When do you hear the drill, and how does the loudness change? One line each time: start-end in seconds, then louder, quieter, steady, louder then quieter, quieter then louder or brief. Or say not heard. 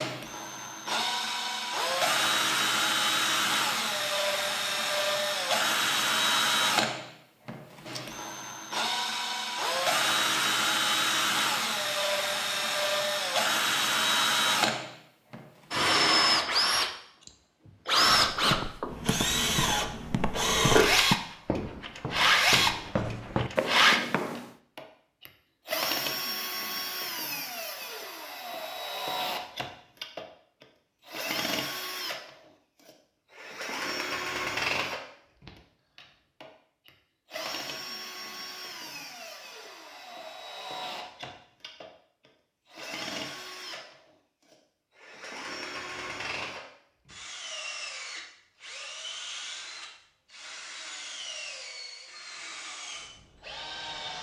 0.0-54.1 quieter.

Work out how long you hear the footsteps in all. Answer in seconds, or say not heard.
6 s.